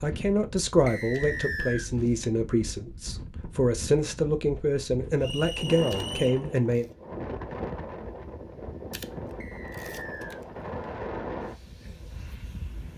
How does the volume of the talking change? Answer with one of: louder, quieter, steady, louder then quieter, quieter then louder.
steady.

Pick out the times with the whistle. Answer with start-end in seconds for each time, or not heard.
0.8-1.9, 5.2-6.4, 9.4-10.4.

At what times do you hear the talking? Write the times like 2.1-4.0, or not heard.
0.0-6.8.